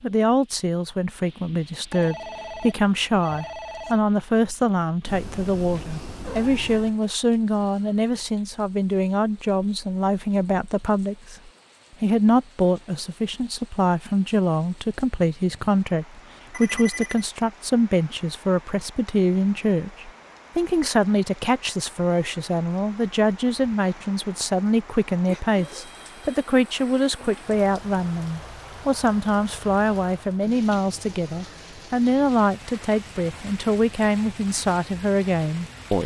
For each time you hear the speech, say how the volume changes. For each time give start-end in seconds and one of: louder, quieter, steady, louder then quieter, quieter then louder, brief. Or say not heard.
0.0-36.0 steady.